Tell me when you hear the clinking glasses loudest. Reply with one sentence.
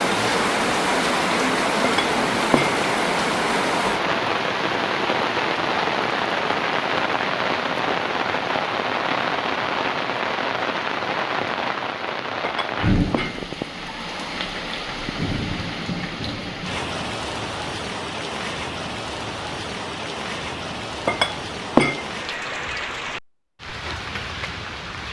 The volume of the clinking glasses peaks at 22 seconds.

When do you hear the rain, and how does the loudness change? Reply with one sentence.
You can hear the rain from 0.0 to 25.0 s, getting quieter.